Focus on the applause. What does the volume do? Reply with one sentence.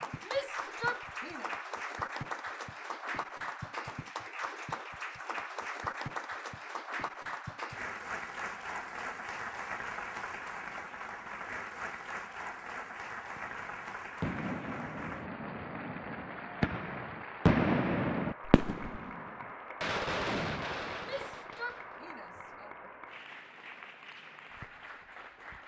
The volume of the applause goes down.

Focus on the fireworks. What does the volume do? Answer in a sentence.
The volume of the fireworks goes up, then down.